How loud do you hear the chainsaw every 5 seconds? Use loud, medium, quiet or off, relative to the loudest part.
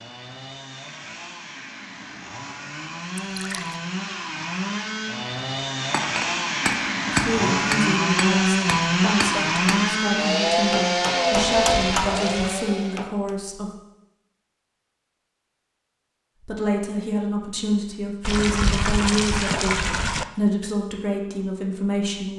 medium, loud, loud, off, off.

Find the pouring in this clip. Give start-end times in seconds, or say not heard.
3.1-3.8, 11.4-12.6, 18.2-20.2.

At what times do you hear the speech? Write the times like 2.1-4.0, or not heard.
7.1-13.7, 16.4-22.3.